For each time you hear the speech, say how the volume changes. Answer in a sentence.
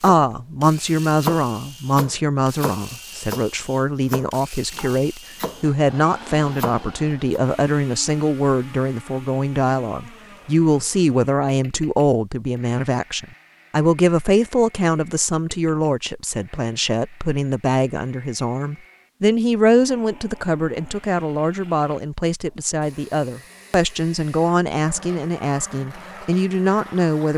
The speech can be heard from 0.0 to 27.3 s, at a steady volume.